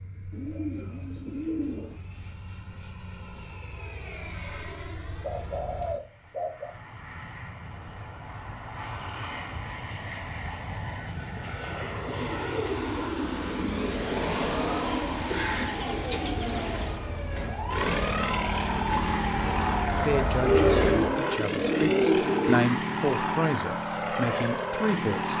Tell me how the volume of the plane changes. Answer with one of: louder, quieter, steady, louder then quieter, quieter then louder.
louder.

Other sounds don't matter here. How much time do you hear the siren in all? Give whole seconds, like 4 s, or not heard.
8 s.